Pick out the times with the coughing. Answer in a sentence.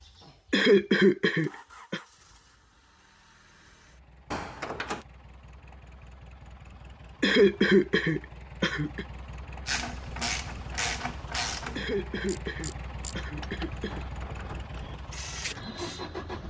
You can hear the coughing from 0.5 to 2.0 s, from 7.2 to 9.1 s and from 11.8 to 14.1 s.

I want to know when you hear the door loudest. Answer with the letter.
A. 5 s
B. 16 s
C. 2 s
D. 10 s
A.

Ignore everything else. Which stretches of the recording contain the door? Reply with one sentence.
The door can be heard from 4.3 to 5.0 s and from 13.8 to 14.8 s.